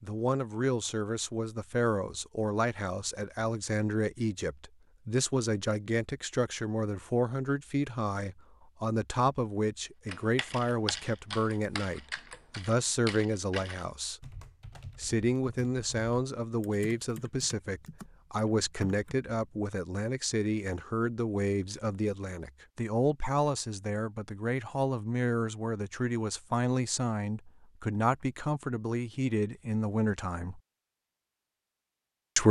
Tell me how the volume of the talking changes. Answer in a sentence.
The volume of the talking stays about the same.